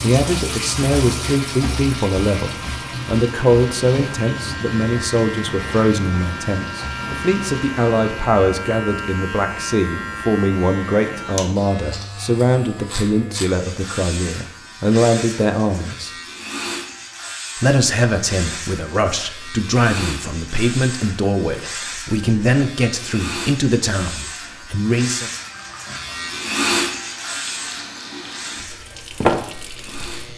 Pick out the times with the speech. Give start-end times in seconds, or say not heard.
0.0-16.1, 17.6-25.3.